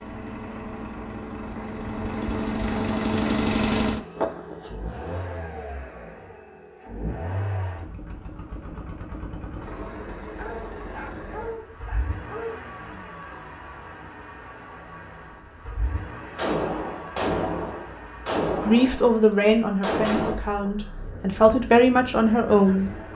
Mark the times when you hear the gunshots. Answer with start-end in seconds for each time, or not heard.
16.4-20.4.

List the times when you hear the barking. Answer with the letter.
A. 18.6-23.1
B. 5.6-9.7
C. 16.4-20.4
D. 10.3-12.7
D.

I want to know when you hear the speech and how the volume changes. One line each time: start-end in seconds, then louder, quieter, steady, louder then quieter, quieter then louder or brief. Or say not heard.
18.6-23.1 quieter then louder.